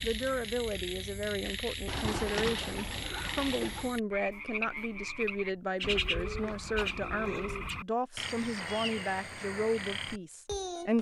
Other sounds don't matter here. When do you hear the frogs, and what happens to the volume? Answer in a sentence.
The frogs can be heard from 0.0 to 10.9 s, at a steady volume.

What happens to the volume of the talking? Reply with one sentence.
The volume of the talking stays about the same.